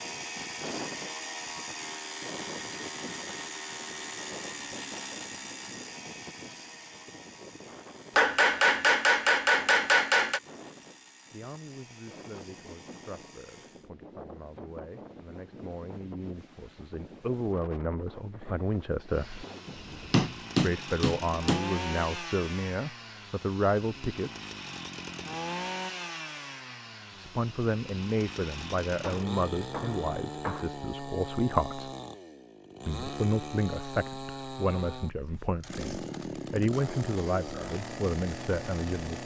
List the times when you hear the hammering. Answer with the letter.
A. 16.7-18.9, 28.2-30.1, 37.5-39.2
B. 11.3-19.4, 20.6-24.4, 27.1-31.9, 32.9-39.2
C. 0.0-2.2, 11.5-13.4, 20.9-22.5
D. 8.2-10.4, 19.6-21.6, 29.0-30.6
D.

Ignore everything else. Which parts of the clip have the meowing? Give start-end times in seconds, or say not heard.
not heard.